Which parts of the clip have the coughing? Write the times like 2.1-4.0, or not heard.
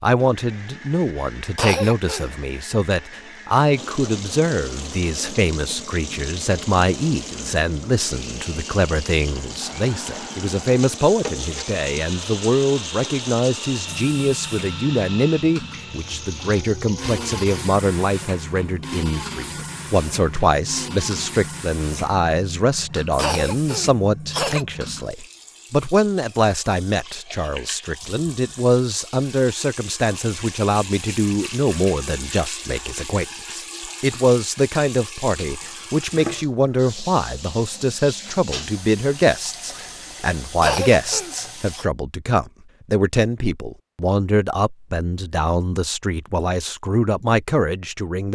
1.6-2.3, 23.1-24.6, 40.6-41.9.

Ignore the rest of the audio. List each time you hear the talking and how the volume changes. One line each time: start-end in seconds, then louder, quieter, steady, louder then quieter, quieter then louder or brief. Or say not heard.
0.0-48.3 steady.